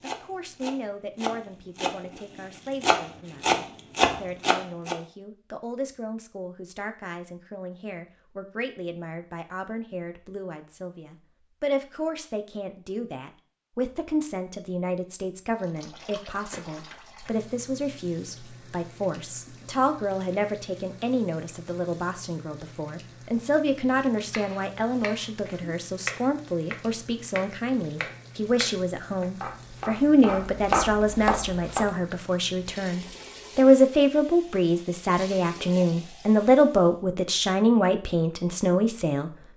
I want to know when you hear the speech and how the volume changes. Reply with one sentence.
The speech can be heard from 0.0 to 39.3 s, getting louder.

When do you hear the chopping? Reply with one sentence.
You can hear the chopping from 0.0 to 5.0 s and from 24.2 to 31.9 s.